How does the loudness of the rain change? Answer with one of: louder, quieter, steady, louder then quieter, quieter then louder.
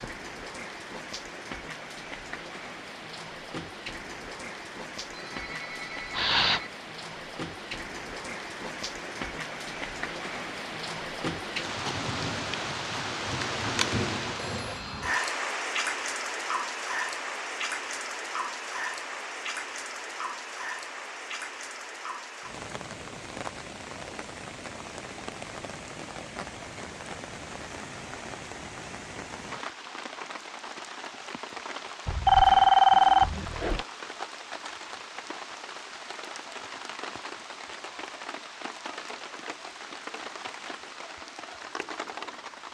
louder then quieter.